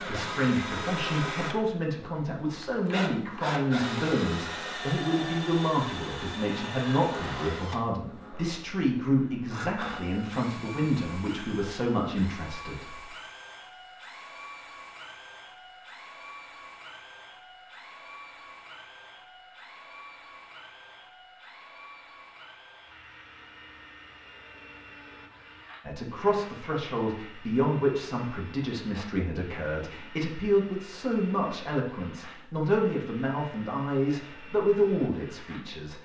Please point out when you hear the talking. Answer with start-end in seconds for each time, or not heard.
0.0-13.0, 25.9-35.9.